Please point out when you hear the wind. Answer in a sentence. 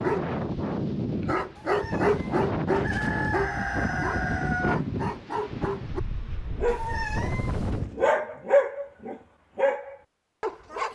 The wind can be heard from 0.0 to 8.1 s.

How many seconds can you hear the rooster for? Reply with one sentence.
The rooster can be heard for 2 seconds in total.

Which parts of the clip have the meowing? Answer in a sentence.
You can hear the meowing from 1.6 to 2.5 s and from 6.7 to 7.8 s.